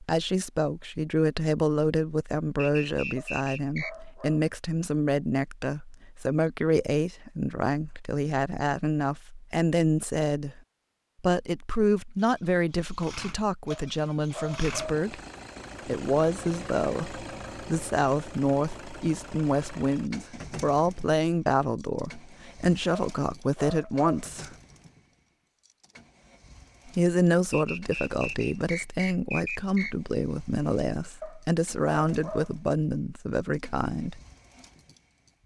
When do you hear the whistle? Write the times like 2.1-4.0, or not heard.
2.5-3.9, 27.5-29.9.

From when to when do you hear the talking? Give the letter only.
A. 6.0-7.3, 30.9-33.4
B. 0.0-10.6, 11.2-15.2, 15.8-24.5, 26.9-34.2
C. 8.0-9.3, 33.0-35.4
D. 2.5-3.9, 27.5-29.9
B.